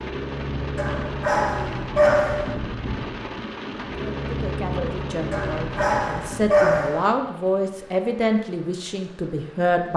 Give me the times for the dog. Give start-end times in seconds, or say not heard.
0.8-2.5, 5.3-7.1.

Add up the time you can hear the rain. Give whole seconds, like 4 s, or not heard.
10 s.